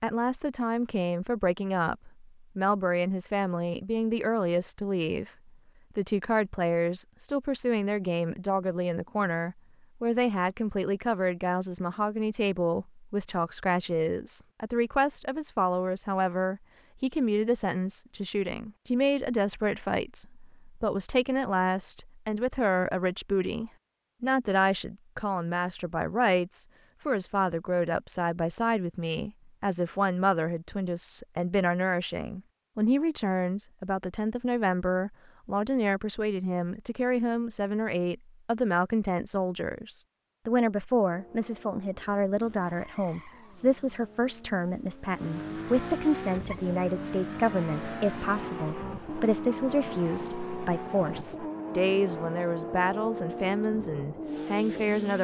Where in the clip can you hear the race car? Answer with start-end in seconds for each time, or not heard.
41.1-55.1.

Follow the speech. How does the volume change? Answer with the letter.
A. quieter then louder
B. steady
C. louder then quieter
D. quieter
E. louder
B.